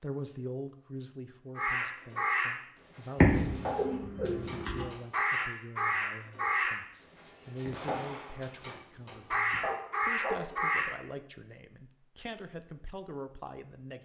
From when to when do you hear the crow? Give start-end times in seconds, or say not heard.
1.6-10.9.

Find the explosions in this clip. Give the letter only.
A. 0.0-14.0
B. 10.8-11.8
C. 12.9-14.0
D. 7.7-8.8
D.